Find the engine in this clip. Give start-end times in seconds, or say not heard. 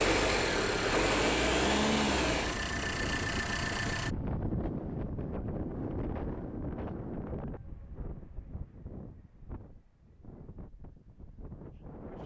0.0-4.2.